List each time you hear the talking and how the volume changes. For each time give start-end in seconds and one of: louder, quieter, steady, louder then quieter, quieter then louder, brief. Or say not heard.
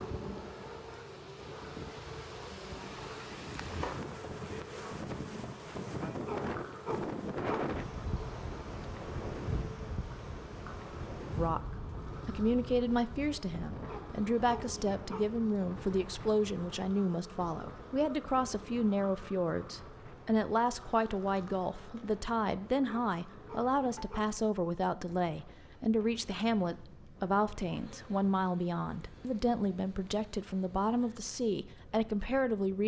11.2-32.8 steady.